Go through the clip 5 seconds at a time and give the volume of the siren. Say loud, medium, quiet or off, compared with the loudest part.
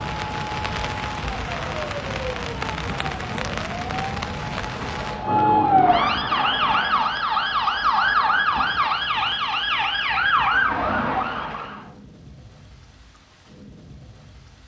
quiet, loud, loud.